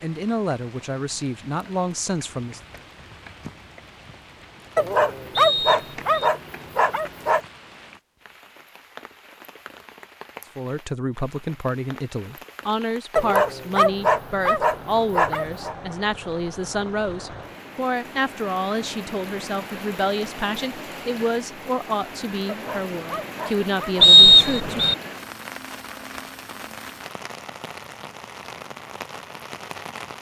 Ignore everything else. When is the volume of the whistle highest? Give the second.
24 s.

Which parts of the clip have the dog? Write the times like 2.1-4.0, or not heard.
4.8-7.4, 13.2-15.8, 22.4-24.1.